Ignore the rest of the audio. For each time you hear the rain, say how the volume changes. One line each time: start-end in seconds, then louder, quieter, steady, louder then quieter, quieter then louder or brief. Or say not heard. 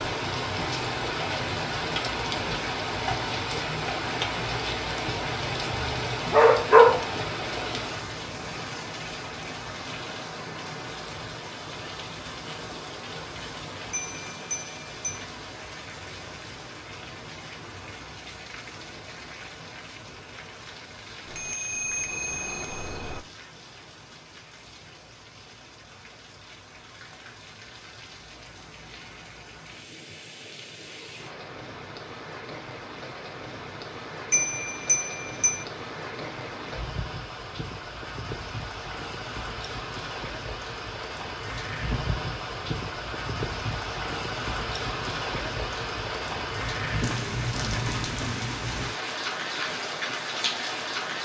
0.0-51.2 quieter then louder.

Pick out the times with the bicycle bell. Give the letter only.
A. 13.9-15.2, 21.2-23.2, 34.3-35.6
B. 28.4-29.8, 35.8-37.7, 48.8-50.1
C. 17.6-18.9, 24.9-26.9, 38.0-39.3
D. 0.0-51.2
A.